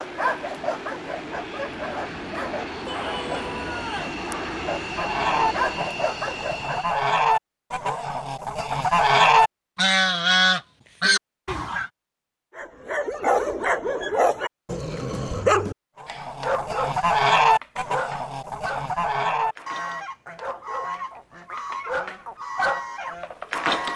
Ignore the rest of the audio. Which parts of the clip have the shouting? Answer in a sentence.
You can hear the shouting from 2.9 to 4.2 s.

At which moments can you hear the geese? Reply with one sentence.
The geese can be heard from 4.9 to 11.9 s and from 16.0 to 23.9 s.